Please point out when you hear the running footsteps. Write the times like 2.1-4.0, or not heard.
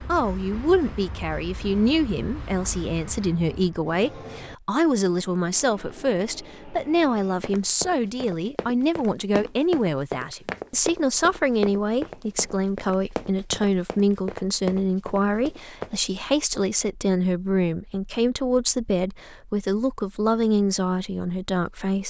7.4-15.9.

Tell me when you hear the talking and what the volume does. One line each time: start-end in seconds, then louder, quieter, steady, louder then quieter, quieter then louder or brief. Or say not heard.
0.1-22.0 steady.